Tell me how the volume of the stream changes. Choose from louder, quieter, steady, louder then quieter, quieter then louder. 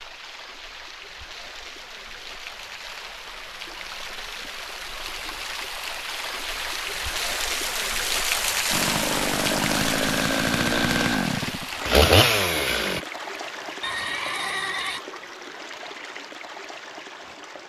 louder then quieter.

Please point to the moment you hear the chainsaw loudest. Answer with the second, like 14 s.
12 s.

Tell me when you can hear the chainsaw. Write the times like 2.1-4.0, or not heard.
8.7-13.0.